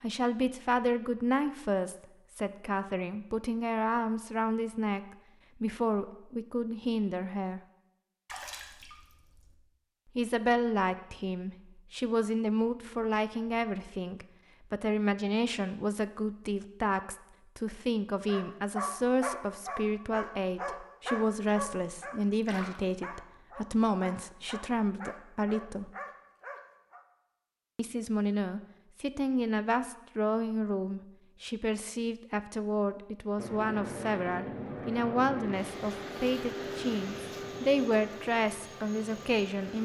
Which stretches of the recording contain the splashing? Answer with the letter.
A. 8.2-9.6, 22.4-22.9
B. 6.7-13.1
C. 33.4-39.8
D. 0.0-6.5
A.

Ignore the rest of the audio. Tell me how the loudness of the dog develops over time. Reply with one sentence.
The volume of the dog goes down.